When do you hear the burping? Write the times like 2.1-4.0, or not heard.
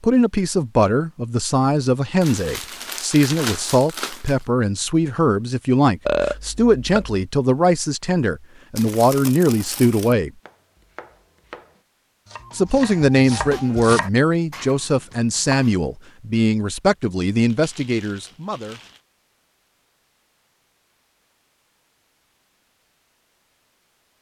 6.0-7.2.